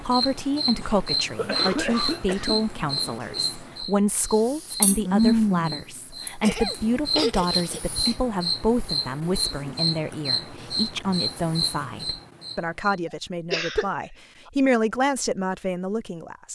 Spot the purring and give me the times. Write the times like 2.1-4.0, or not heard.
not heard.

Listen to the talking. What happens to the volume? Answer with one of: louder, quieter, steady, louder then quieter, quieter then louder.
steady.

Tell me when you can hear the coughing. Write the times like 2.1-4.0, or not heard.
0.8-2.5, 6.4-8.2, 13.5-14.5.